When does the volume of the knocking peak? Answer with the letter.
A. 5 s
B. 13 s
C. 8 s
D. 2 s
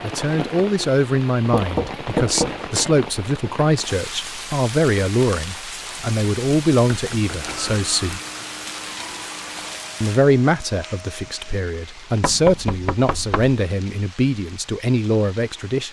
D.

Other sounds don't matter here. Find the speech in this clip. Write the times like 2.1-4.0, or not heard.
0.0-8.2, 10.0-15.8.